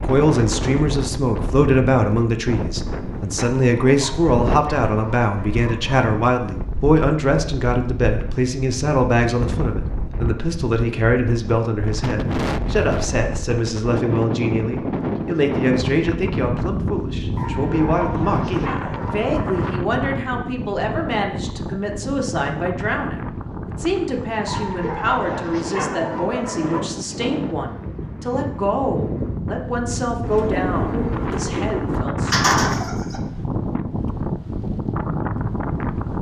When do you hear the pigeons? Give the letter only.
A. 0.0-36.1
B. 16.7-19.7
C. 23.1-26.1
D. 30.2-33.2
D.